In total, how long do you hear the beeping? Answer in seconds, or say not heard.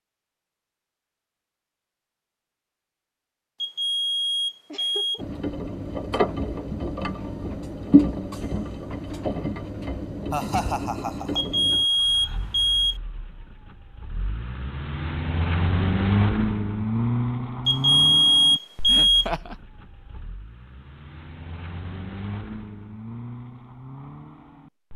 5 s.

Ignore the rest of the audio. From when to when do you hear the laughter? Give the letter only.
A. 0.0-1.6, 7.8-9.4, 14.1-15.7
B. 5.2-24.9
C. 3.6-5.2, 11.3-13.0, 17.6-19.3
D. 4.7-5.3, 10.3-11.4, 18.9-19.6
D.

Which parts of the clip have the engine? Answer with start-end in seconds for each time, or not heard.
5.2-24.9.